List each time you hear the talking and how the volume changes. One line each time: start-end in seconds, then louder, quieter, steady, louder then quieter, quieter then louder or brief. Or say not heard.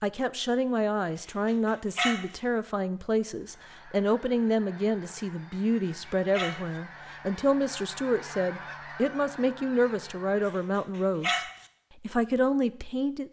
0.0-11.4 steady
12.0-13.2 brief.